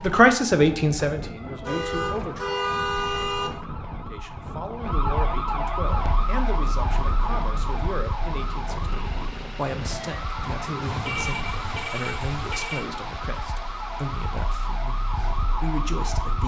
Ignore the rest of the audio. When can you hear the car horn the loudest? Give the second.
3 s.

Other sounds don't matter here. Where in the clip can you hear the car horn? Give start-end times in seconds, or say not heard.
1.6-3.5, 10.8-12.8.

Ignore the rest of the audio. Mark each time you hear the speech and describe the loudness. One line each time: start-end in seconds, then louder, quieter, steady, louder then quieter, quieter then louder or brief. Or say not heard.
0.0-2.5 brief
4.0-16.4 steady.